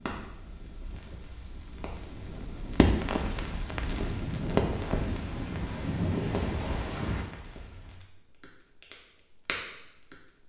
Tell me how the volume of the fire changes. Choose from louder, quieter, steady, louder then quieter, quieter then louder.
louder then quieter.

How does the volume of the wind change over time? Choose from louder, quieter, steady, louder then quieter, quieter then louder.
louder.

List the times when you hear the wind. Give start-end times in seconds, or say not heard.
0.0-7.2.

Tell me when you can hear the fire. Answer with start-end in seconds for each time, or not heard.
0.0-10.4.